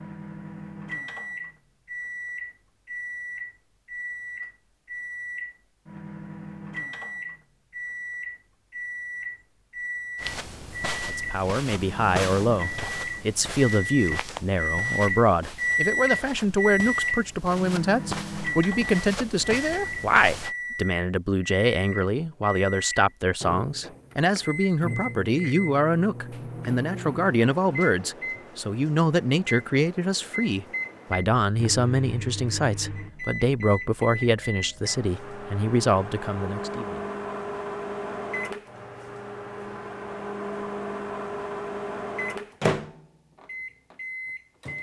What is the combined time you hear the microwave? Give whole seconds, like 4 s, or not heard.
45 s.